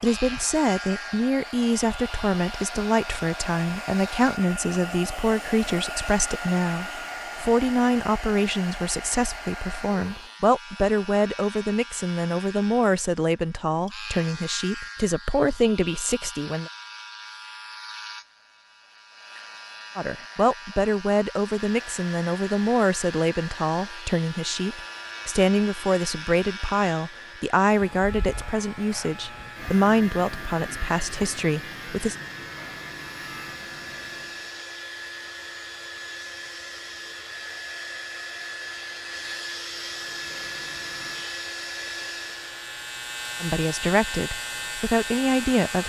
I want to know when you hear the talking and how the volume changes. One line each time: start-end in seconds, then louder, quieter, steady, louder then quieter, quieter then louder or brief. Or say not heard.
0.0-16.7 steady
19.9-32.1 steady
43.4-45.8 brief.